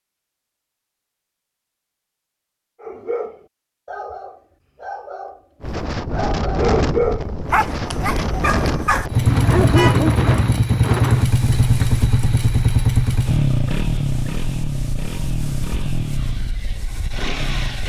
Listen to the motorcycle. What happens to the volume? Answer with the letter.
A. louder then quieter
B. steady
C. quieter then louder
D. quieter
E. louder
D.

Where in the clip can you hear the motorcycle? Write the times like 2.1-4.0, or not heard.
9.1-17.8.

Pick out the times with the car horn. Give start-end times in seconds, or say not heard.
9.2-10.0.